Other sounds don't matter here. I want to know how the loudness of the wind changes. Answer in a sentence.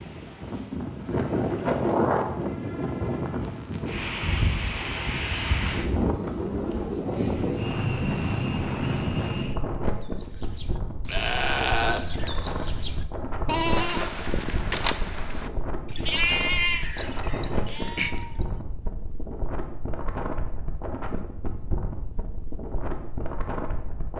The loudness of the wind goes down.